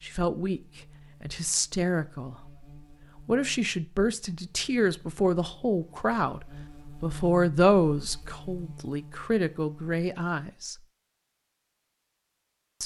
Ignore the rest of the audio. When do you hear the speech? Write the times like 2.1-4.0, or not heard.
0.0-0.6, 1.2-2.6, 3.2-10.8.